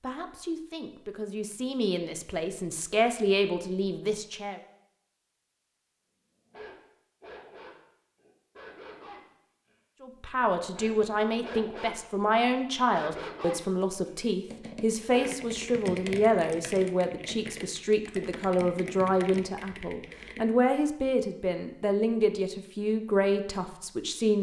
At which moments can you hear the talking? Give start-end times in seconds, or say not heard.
0.0-4.6, 10.0-24.3.